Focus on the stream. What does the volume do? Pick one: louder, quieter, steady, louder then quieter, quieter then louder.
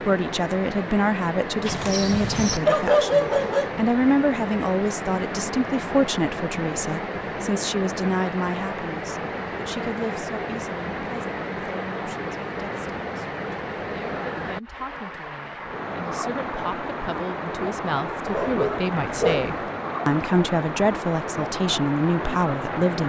steady.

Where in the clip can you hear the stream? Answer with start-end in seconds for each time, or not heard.
0.0-23.0.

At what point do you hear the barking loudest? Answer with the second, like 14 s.
3 s.